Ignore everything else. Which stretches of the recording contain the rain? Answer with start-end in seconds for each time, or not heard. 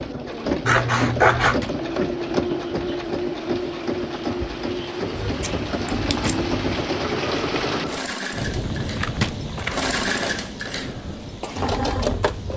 0.0-12.5.